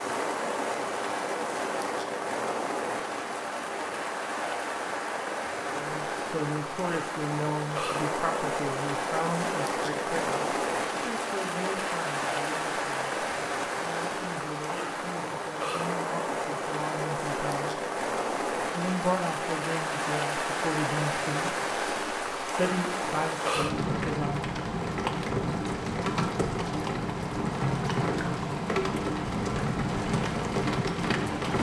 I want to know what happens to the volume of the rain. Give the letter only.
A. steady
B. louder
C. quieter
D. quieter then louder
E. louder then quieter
A.